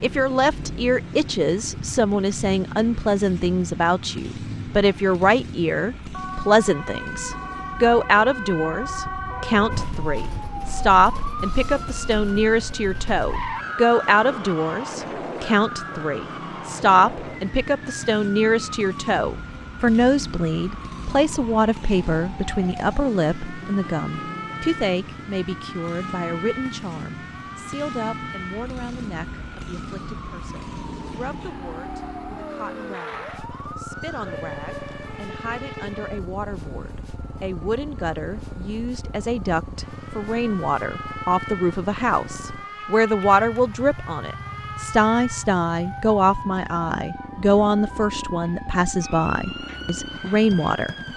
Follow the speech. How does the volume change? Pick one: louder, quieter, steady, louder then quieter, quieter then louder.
quieter then louder.